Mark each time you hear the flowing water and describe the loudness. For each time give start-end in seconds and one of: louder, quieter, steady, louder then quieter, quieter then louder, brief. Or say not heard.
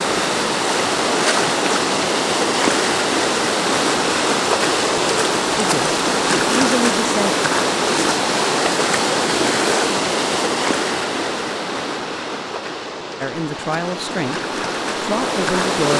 0.0-15.9 quieter.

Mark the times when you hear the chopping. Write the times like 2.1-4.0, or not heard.
not heard.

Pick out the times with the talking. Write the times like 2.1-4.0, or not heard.
5.5-7.3, 13.2-14.4, 15.0-15.9.